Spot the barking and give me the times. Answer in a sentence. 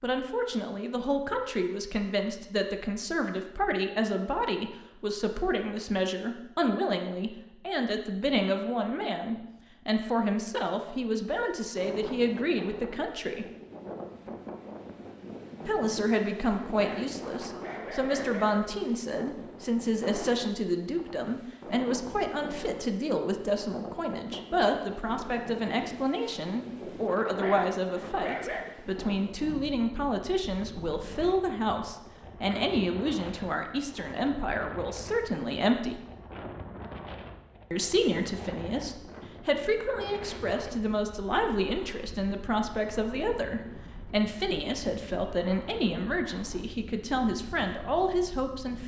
The barking can be heard from 16.8 to 18.6 s and from 27.2 to 28.8 s.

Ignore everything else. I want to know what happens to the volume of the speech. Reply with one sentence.
The volume of the speech stays about the same.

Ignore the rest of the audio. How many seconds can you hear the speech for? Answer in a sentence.
The speech can be heard for 45 seconds in total.